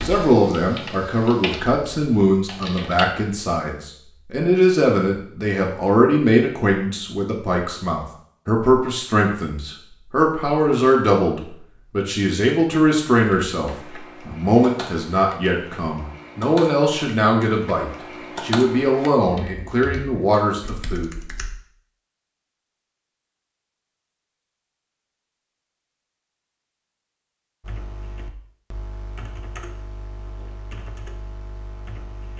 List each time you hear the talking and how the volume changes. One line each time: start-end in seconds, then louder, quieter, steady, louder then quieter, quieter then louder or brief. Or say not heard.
0.0-21.1 steady.